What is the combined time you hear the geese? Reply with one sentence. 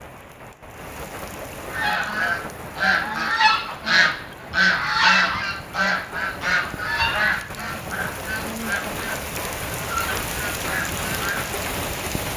You can hear the geese for 10 seconds altogether.